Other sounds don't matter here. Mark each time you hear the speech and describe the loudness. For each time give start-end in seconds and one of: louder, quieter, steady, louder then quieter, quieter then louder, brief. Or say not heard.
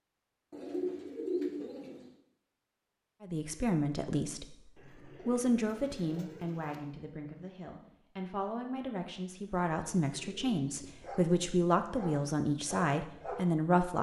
3.2-13.9 quieter then louder.